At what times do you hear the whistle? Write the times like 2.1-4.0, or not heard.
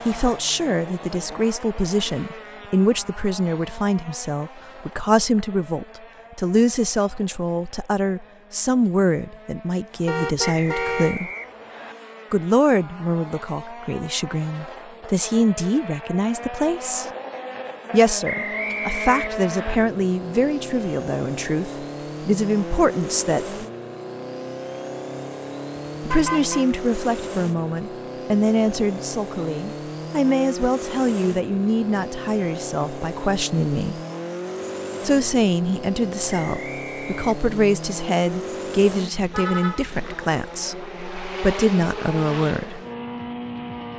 10.4-11.9, 18.2-19.8, 36.2-37.3.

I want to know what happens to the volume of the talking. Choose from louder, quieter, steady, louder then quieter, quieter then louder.
steady.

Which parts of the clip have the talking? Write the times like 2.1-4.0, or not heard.
0.1-11.3, 12.3-17.1, 17.9-23.6, 26.0-34.0, 35.0-42.8.